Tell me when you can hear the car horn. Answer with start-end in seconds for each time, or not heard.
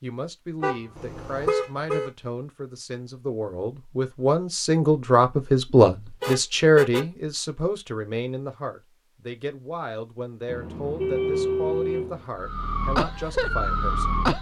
0.6-2.1, 6.2-7.0, 10.4-12.2.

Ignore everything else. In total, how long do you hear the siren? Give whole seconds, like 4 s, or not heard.
2 s.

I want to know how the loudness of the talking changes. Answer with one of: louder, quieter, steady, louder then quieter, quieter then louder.
louder then quieter.